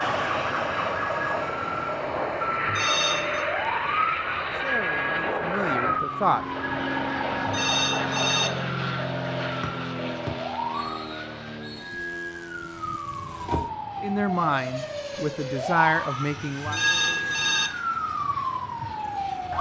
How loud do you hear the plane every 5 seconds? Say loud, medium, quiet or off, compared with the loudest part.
loud, loud, medium, quiet.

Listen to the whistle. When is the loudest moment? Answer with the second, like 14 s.
10 s.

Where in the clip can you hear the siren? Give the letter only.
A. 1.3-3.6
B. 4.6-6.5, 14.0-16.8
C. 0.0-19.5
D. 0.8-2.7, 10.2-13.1
C.